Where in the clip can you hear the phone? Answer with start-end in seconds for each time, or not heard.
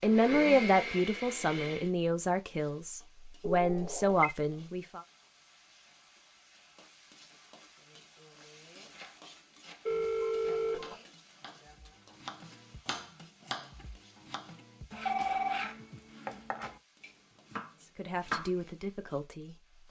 3.4-4.3, 9.8-10.9, 15.1-15.7.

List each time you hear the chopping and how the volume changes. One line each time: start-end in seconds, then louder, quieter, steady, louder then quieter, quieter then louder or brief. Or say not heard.
8.5-18.6 louder.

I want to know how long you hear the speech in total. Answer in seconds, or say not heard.
7 s.